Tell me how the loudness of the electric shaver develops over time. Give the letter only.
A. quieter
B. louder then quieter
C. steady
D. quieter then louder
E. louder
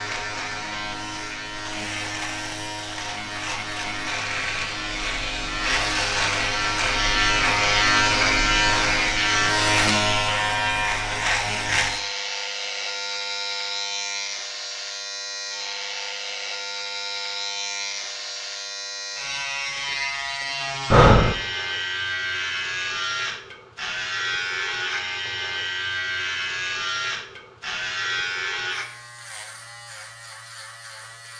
B.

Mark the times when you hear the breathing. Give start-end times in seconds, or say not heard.
20.9-21.4.